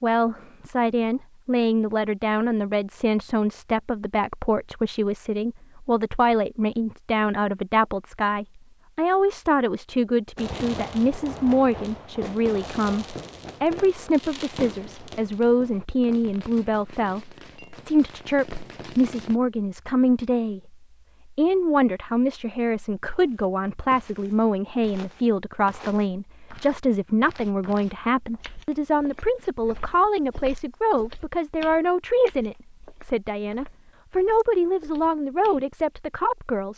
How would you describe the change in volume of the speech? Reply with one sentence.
The volume of the speech stays about the same.